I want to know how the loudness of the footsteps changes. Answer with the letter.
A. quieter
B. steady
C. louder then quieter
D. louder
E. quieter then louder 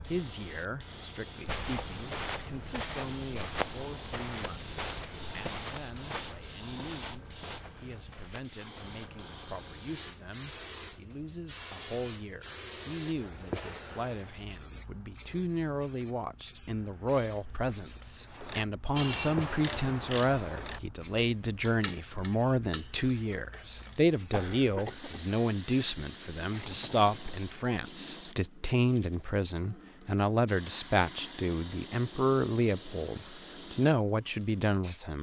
A.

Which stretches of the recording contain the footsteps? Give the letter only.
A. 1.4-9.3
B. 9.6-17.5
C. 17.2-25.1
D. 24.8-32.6
A.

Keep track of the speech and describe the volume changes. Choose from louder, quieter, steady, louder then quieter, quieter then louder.
louder.